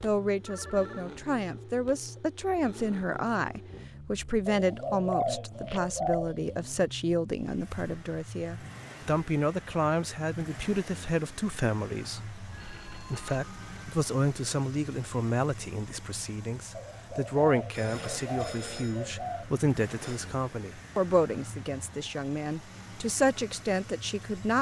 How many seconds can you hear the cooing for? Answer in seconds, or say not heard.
5 s.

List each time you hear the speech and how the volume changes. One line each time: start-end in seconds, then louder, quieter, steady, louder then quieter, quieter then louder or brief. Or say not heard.
0.0-24.5 steady.